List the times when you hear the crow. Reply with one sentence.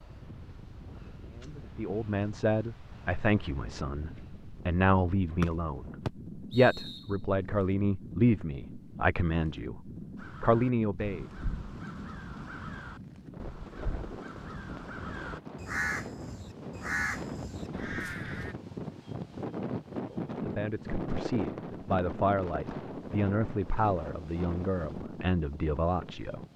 The crow can be heard from 10.2 to 18.6 s.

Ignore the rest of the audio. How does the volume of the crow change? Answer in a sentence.
The volume of the crow goes up.